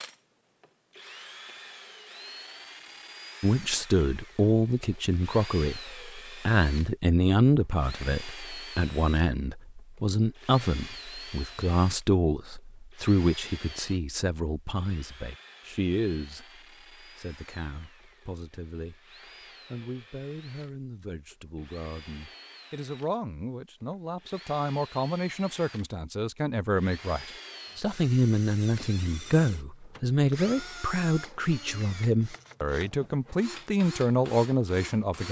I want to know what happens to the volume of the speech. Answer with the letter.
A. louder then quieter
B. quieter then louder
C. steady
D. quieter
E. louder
B.